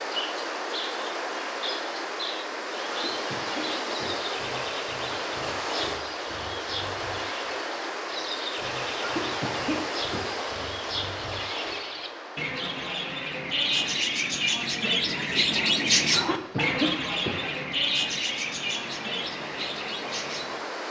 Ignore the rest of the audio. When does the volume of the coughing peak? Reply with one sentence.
The volume of the coughing peaks at 17 seconds.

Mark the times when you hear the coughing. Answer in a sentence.
The coughing can be heard from 2.9 to 4.2 s, from 9.0 to 10.4 s and from 16.1 to 17.5 s.